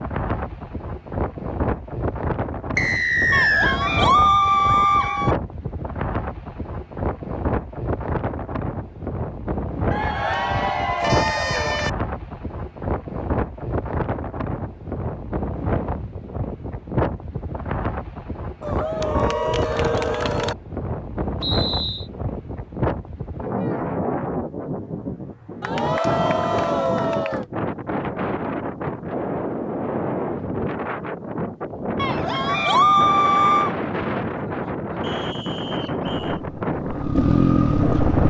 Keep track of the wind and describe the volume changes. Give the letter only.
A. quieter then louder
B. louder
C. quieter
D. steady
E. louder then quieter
D.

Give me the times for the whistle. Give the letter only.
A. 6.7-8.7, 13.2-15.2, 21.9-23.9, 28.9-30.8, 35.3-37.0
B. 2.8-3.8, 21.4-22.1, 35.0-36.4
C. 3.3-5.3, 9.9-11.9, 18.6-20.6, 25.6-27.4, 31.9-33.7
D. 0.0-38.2
B.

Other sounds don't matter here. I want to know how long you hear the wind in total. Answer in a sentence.
The wind can be heard for 38 seconds in total.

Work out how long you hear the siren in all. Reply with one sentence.
The siren can't be heard in this clip.